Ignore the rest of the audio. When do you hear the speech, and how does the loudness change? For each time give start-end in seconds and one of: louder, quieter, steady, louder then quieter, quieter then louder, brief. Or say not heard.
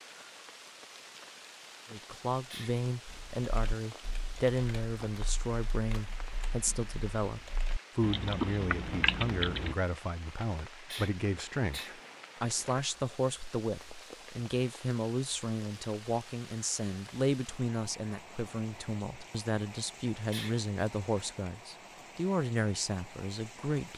1.9-23.9 steady.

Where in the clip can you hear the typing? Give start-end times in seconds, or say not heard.
3.0-9.8.